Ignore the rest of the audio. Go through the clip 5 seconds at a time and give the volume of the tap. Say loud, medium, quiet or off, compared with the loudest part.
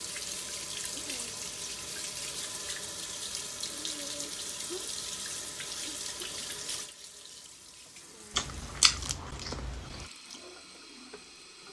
loud, loud, medium.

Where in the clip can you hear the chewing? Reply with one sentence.
You can hear the chewing from 8.3 to 10.1 s.